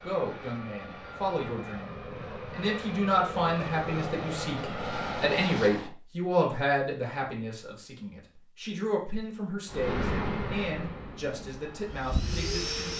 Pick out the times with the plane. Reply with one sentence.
You can hear the plane from 0.0 to 6.0 s and from 9.7 to 12.9 s.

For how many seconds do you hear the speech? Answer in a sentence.
The speech can be heard for 13 seconds in total.